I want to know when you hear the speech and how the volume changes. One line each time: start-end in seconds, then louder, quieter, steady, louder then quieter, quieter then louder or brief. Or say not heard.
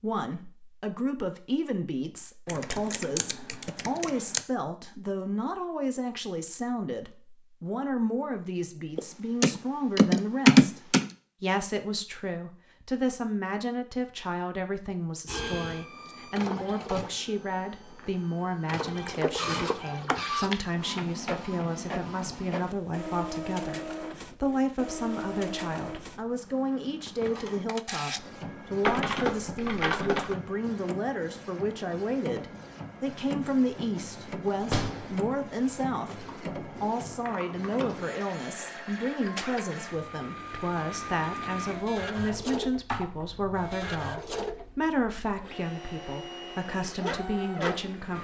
0.0-48.1 steady.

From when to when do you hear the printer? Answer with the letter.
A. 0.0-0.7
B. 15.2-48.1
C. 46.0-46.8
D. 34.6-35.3
B.